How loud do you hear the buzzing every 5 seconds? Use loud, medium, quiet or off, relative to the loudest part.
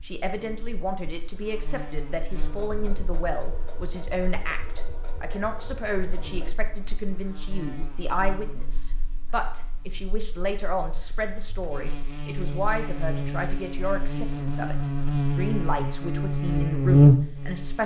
quiet, quiet, quiet, loud.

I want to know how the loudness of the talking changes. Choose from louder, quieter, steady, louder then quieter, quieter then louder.
steady.